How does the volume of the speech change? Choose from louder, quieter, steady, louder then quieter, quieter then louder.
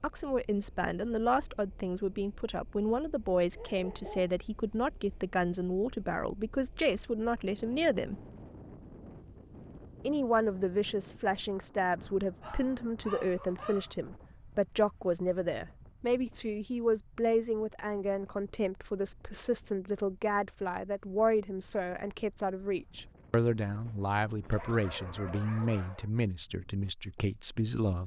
steady.